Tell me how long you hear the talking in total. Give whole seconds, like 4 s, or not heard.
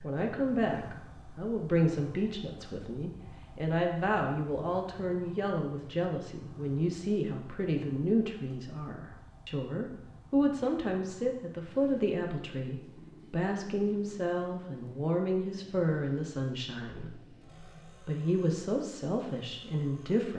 20 s.